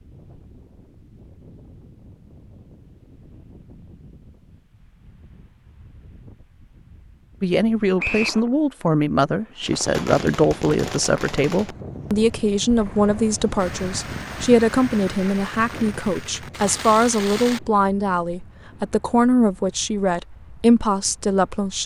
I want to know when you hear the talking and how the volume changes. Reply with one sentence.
The talking can be heard from 7.4 to 21.8 s, at a steady volume.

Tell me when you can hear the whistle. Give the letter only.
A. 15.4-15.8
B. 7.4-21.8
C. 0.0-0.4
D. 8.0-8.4
D.